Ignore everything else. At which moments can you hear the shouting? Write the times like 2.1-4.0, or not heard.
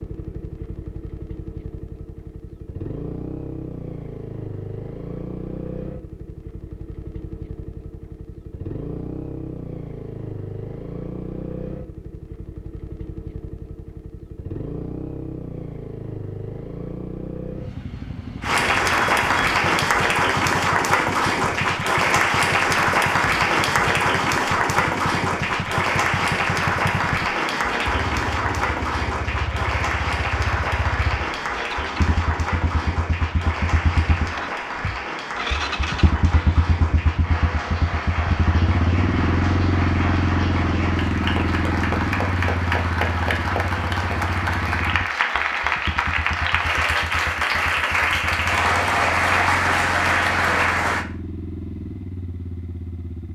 not heard.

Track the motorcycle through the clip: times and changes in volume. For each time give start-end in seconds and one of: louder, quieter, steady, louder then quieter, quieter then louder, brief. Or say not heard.
0.0-53.3 louder then quieter.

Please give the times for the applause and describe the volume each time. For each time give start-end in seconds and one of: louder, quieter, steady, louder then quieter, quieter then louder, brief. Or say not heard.
18.4-51.0 quieter then louder.